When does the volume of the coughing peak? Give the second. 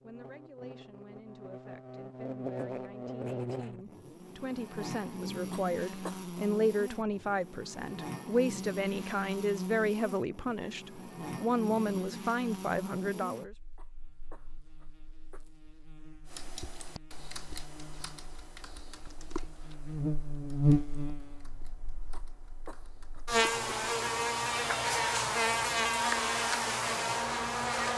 6 s.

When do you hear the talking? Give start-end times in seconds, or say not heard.
0.0-13.6.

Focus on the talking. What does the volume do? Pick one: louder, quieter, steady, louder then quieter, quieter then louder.
louder.